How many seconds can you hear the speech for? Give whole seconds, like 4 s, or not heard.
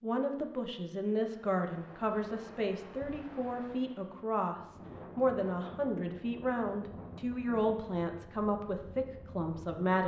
10 s.